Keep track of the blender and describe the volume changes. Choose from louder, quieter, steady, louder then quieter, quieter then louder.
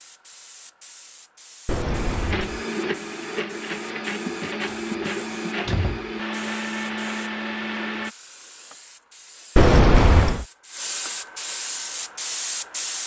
steady.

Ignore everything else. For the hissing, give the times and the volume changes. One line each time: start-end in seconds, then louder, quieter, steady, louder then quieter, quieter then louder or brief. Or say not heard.
0.0-13.0 louder.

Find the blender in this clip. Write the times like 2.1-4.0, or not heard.
1.9-8.2.